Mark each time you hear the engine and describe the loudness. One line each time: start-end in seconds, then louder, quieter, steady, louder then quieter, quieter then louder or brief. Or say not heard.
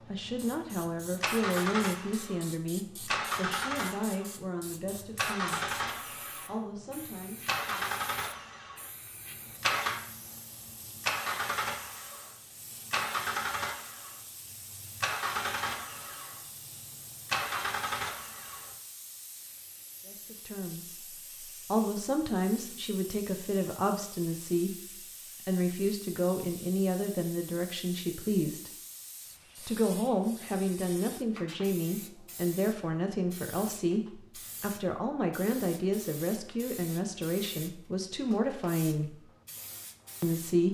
0.0-18.7 steady.